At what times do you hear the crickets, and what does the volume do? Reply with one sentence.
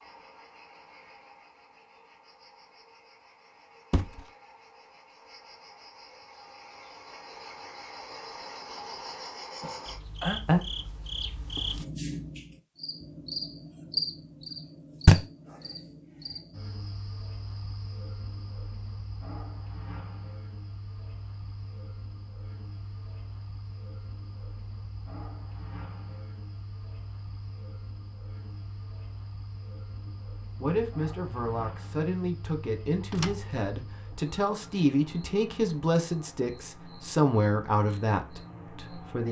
You can hear the crickets from 0.0 to 39.2 s, getting louder then quieter.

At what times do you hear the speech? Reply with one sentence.
The speech can be heard from 30.1 to 39.2 s.